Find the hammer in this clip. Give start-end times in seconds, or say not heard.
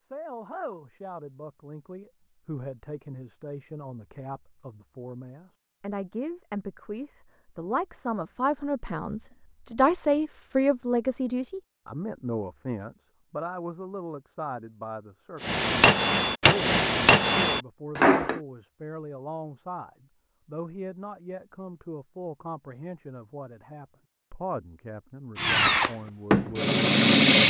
15.4-18.4.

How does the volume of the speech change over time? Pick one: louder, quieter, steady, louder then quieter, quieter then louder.
louder then quieter.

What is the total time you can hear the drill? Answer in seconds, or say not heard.
2 s.